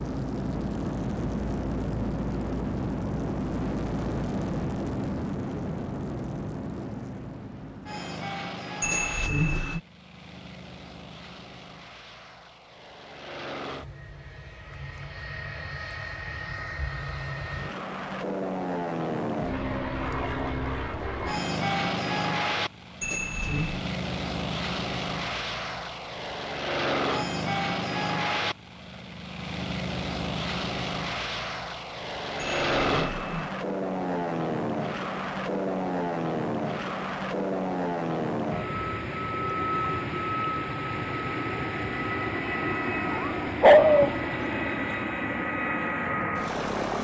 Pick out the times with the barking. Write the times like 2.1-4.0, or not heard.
43.1-44.1.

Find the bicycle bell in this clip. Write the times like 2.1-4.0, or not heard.
8.8-9.8, 23.0-23.9, 32.4-33.5.